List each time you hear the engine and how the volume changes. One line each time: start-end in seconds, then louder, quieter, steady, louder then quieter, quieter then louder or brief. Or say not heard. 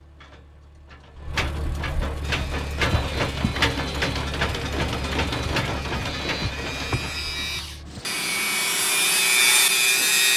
0.0-10.3 louder then quieter.